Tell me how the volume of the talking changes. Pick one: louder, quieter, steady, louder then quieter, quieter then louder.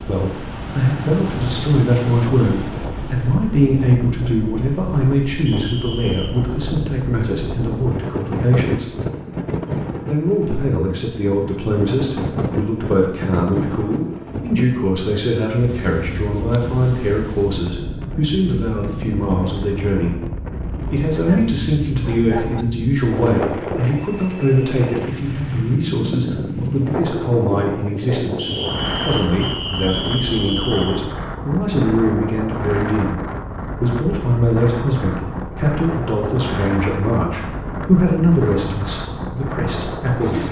steady.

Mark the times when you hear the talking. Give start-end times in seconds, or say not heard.
0.1-8.9, 10.1-20.1, 20.8-33.2, 33.8-40.4.